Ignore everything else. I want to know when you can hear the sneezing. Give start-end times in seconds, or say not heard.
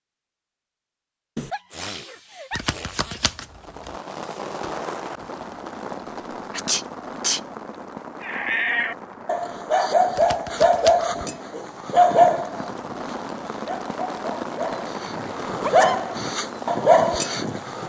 1.4-3.2, 6.5-7.4, 15.6-16.0.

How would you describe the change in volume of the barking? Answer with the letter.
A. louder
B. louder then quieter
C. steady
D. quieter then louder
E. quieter
D.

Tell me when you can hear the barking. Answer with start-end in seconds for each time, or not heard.
8.2-17.8.